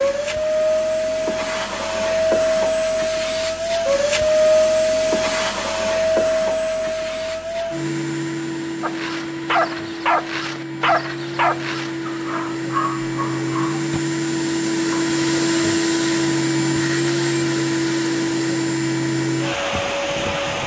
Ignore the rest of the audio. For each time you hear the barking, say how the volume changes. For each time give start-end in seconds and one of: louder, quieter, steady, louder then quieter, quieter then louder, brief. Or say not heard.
8.8-14.0 quieter then louder.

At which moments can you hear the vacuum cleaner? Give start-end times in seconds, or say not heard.
0.0-20.6.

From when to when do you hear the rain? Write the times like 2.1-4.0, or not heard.
not heard.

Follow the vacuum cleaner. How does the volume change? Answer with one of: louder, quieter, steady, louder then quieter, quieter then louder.
quieter then louder.